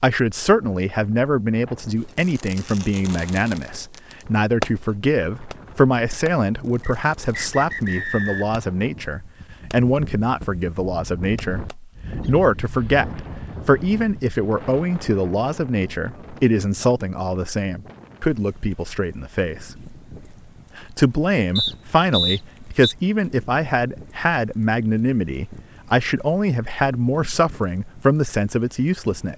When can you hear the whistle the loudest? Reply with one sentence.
The loudest moment of the whistle is at 22 seconds.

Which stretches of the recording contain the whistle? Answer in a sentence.
You can hear the whistle from 6.8 to 8.6 s and from 21.6 to 22.9 s.